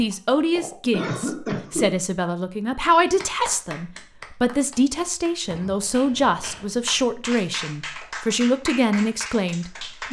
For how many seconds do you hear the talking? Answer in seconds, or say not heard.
10 s.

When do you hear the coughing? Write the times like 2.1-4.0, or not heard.
0.1-2.0, 5.5-7.0.